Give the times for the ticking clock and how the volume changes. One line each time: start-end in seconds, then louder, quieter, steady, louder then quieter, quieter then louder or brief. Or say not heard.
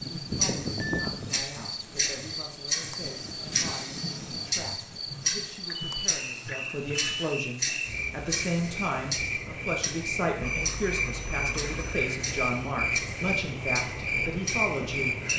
0.0-15.3 quieter.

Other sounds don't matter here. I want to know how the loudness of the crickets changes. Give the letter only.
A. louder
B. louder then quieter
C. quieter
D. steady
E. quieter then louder
A.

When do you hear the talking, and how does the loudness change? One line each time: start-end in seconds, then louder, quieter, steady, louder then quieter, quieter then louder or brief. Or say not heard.
0.2-15.3 louder.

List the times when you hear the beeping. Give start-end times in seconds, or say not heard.
0.3-1.3, 5.7-7.3, 10.4-11.9.